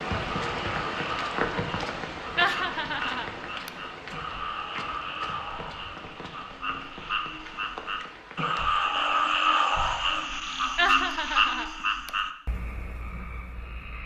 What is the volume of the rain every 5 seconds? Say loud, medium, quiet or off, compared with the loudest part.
loud, medium, off.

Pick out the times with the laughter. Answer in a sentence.
The laughter can be heard from 2.4 to 3.7 s and from 10.8 to 12.1 s.